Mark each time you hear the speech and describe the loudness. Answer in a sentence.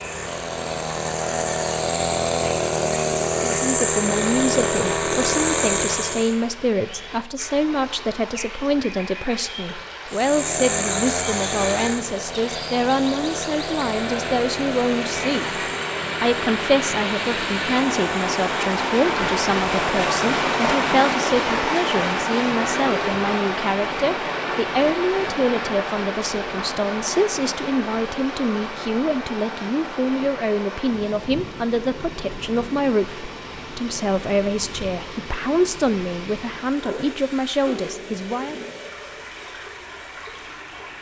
The speech can be heard from 3.4 to 15.6 s, at a steady volume; and from 16.2 to 38.5 s, at a steady volume.